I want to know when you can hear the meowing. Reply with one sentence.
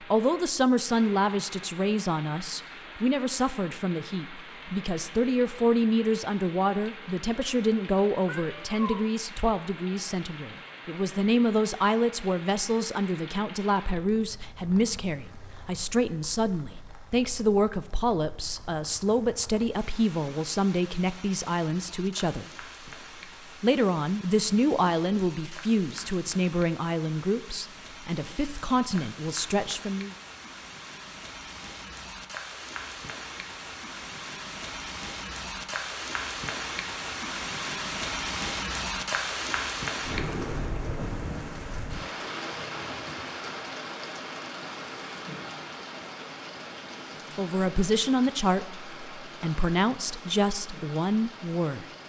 The meowing can be heard from 8.2 to 9.1 s.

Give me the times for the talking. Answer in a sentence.
The talking can be heard from 0.0 to 22.4 s, from 23.6 to 30.1 s and from 47.4 to 51.9 s.